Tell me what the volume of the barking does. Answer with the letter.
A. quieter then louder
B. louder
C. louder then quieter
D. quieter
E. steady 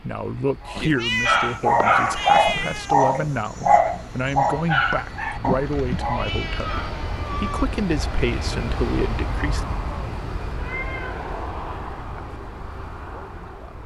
D.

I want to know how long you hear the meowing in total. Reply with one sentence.
The meowing can be heard for 5 seconds in total.